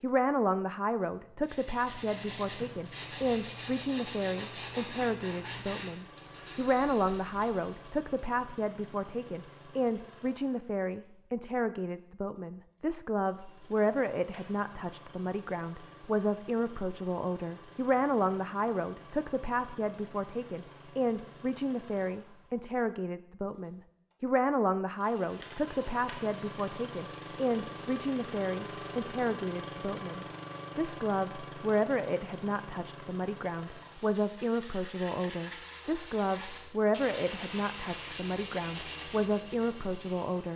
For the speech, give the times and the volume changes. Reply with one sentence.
You can hear the speech from 0.0 to 40.5 s, at a steady volume.